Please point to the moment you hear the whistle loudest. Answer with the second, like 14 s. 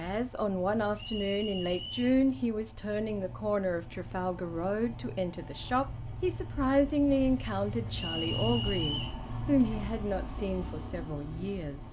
9 s.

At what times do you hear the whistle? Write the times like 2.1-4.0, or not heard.
0.9-2.1, 8.0-9.2.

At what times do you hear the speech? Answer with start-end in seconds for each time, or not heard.
0.0-11.8.